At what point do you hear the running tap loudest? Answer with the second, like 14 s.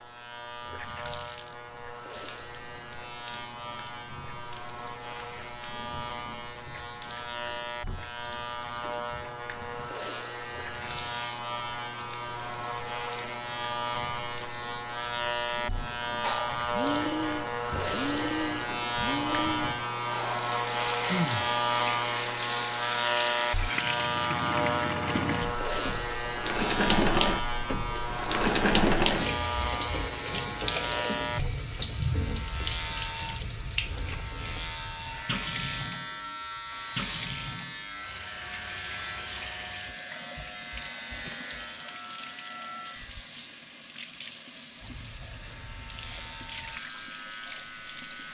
29 s.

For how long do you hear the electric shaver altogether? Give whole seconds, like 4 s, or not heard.
48 s.